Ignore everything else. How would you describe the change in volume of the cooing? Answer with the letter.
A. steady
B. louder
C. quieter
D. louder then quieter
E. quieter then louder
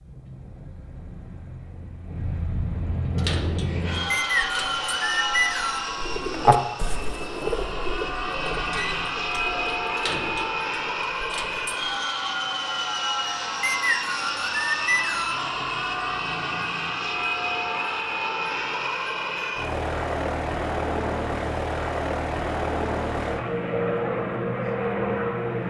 D.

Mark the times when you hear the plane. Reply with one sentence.
The plane can be heard from 0.0 to 25.6 s.